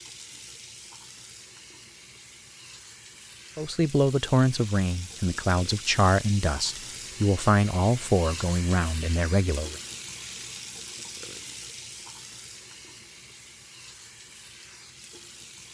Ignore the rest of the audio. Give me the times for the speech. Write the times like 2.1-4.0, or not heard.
3.5-9.8.